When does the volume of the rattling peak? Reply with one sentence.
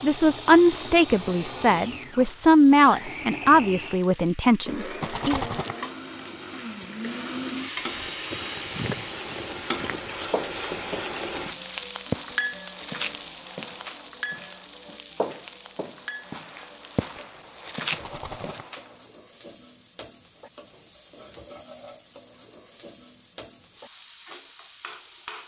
The volume of the rattling peaks at 5 seconds.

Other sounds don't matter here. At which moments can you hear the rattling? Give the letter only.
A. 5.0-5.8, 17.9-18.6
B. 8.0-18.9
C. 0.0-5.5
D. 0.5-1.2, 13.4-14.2
A.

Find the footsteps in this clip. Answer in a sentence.
You can hear the footsteps from 8.0 to 18.9 s.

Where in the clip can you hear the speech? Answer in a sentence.
The speech can be heard from 0.0 to 5.5 s.